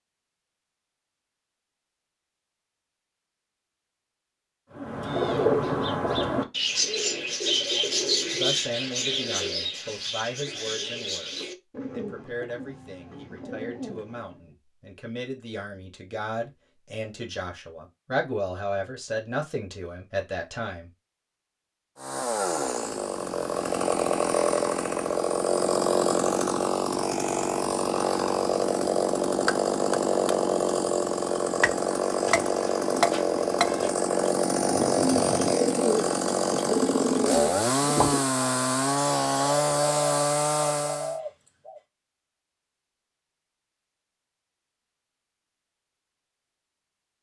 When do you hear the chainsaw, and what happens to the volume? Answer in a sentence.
You can hear the chainsaw from 21.9 to 41.2 s, at a steady volume.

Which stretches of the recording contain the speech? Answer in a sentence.
You can hear the speech from 8.3 to 20.9 s.